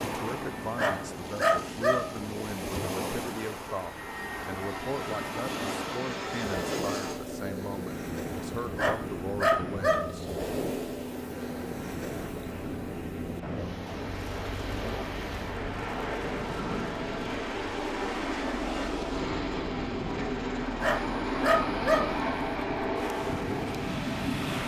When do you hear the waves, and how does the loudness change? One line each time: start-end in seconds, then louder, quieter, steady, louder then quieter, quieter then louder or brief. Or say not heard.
0.0-24.6 steady.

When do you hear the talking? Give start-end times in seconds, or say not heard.
0.0-10.3.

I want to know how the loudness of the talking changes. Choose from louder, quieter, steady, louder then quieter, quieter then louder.
steady.